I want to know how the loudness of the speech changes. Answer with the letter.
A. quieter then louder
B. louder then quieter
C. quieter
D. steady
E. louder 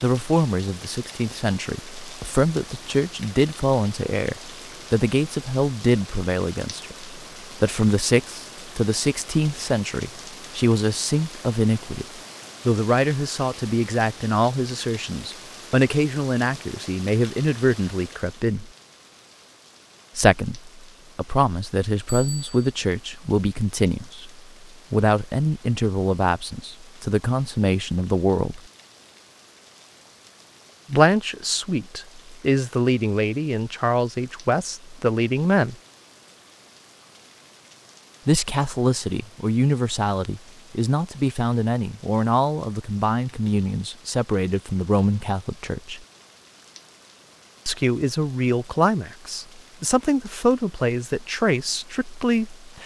D.